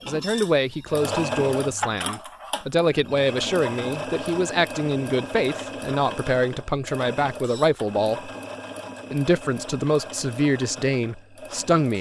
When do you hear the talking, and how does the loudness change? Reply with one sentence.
You can hear the talking from 0.1 to 8.3 s, at a steady volume; and briefly from 9.1 to 11.9 s.